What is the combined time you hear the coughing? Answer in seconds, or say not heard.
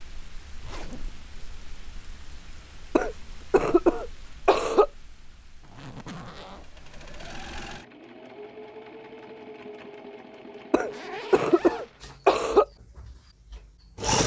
4 s.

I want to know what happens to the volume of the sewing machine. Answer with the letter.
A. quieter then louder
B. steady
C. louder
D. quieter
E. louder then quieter
D.